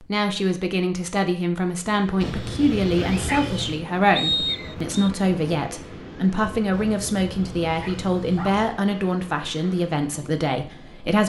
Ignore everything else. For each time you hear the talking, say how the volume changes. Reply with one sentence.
The talking can be heard from 0.0 to 11.2 s, at a steady volume.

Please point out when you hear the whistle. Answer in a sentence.
You can hear the whistle from 4.2 to 5.1 s.